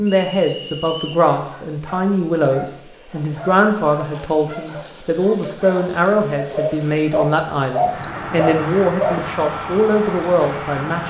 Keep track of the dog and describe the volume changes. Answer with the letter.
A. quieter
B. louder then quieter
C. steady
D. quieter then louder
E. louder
E.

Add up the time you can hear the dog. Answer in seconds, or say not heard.
8 s.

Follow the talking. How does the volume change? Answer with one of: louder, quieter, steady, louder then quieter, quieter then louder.
steady.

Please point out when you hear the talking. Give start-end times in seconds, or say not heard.
0.0-11.0.